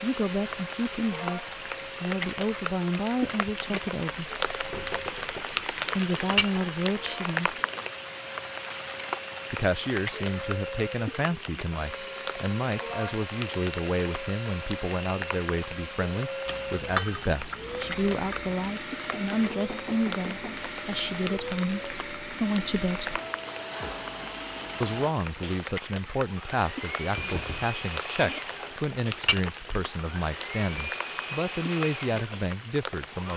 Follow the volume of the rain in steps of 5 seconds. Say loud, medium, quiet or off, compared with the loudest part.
loud, loud, medium, medium, medium, medium, medium.